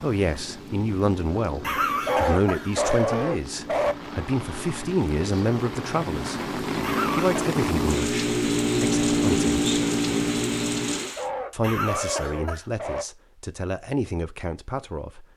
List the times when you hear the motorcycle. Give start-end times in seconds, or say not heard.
0.2-11.2.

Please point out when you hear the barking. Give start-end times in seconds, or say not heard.
2.0-4.0, 11.2-13.1.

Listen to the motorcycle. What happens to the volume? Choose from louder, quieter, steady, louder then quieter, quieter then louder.
louder.